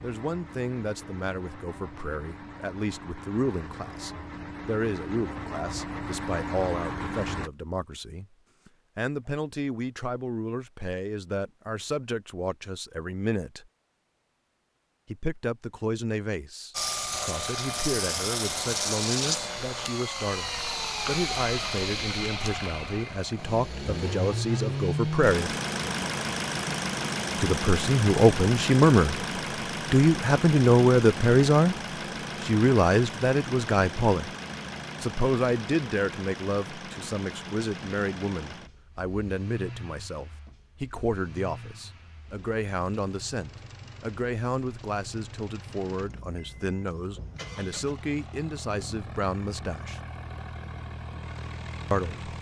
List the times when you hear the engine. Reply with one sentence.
You can hear the engine from 0.0 to 7.5 s and from 16.7 to 52.3 s.